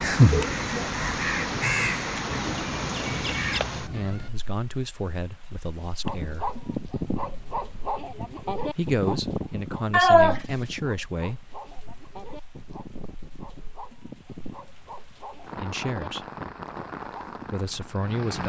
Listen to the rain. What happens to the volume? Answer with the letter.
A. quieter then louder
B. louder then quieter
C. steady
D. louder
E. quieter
A.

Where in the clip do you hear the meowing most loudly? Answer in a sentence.
The loudest moment of the meowing is at 10 seconds.